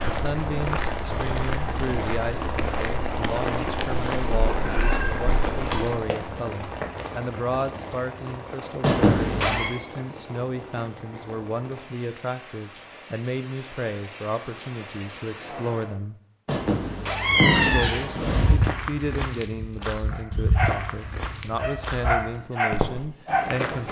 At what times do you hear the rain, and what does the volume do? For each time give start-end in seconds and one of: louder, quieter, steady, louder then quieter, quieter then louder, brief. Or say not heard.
0.0-15.9 quieter.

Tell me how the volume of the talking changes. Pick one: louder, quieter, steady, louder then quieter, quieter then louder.
steady.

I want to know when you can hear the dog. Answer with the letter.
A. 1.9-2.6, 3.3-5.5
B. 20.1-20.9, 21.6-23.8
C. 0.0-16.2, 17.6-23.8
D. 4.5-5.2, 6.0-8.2
B.